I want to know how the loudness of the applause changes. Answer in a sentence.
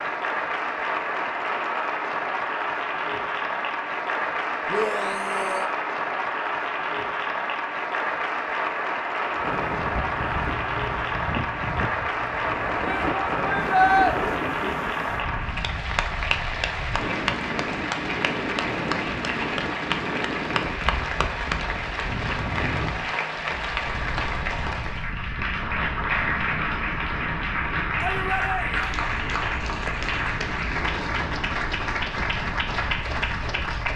The volume of the applause stays about the same.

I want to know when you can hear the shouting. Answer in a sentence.
The shouting can be heard from 4.7 to 5.7 s, from 12.8 to 14.2 s and from 27.9 to 29.0 s.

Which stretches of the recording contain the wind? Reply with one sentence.
The wind can be heard from 9.2 to 33.9 s.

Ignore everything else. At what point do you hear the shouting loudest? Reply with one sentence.
The loudest moment of the shouting is at 14 seconds.